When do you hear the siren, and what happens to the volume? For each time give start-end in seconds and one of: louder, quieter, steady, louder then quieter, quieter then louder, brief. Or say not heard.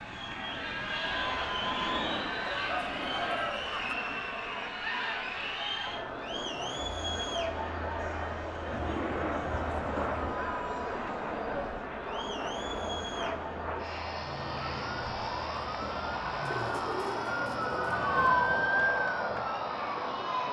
14.1-20.4 louder then quieter.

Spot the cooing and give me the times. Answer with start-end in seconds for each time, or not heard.
2.5-4.0, 8.7-10.4, 16.4-18.0.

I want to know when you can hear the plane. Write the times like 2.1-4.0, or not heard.
0.0-20.4.